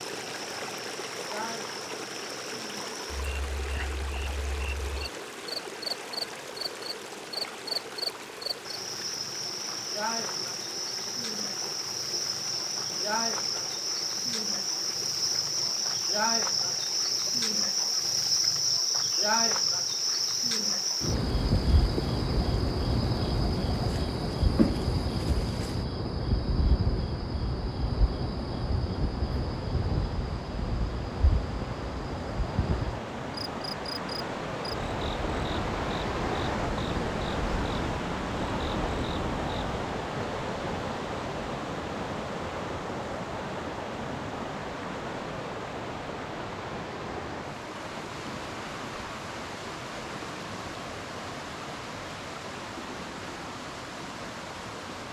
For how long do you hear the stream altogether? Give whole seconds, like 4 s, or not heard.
55 s.